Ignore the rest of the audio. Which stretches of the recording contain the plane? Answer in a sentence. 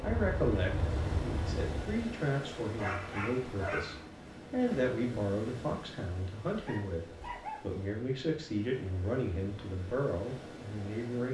The plane can be heard from 0.0 to 2.1 s.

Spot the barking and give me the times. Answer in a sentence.
You can hear the barking from 2.8 to 4.0 s and from 6.7 to 7.6 s.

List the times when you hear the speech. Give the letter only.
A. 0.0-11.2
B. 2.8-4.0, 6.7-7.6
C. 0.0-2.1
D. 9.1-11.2
A.